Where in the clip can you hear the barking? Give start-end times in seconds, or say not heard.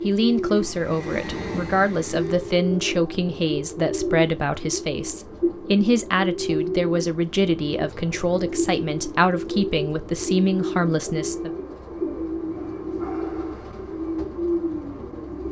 12.6-13.8.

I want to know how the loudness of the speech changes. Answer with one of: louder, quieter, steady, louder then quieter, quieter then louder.
steady.